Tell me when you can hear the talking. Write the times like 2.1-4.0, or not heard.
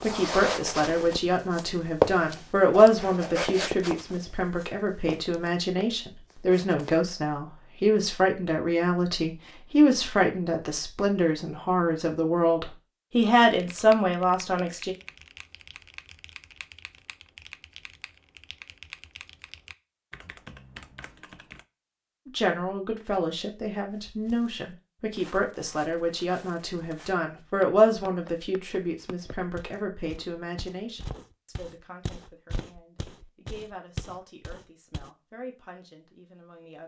0.0-14.9, 22.2-36.8.